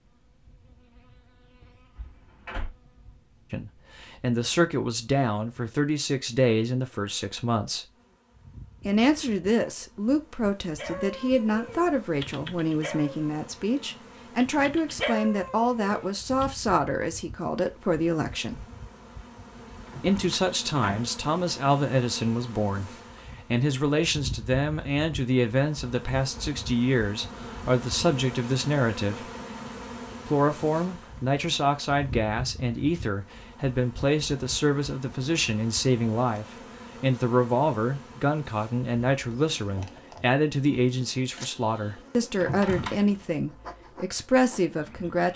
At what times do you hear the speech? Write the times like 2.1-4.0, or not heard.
3.5-7.8, 8.8-18.6, 20.0-29.3, 30.2-45.3.